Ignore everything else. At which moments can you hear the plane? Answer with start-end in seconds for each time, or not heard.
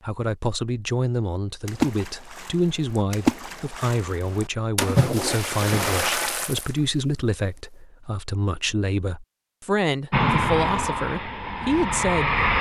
10.1-12.5.